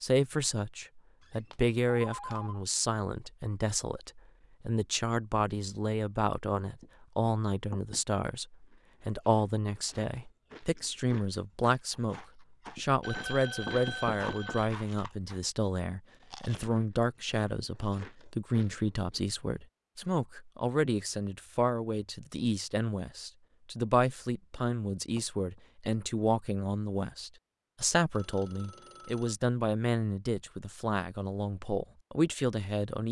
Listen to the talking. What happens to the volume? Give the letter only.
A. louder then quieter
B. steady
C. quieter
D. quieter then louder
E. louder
B.